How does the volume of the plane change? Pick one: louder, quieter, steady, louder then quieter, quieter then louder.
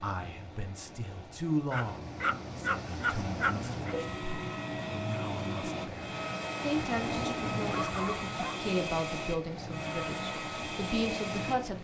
louder.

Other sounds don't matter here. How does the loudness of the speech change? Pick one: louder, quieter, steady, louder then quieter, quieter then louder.
quieter then louder.